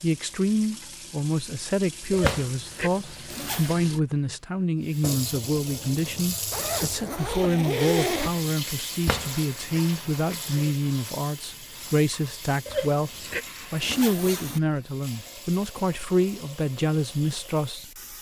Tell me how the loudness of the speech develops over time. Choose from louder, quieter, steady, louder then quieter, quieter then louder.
steady.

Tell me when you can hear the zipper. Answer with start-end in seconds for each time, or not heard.
2.1-3.8, 6.5-8.3, 12.7-14.6.